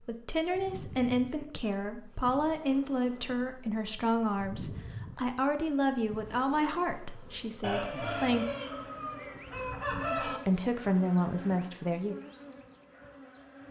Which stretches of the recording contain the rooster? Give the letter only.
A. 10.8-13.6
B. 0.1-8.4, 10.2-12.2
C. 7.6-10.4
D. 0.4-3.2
C.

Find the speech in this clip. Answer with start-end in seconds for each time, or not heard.
0.1-8.4, 10.2-12.2.